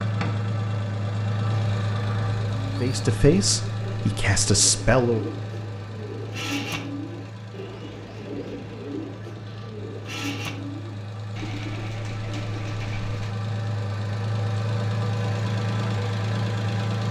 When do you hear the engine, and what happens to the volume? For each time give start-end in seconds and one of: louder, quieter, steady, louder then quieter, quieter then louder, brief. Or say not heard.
0.0-17.0 quieter then louder.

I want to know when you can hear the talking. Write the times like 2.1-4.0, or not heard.
2.8-5.3.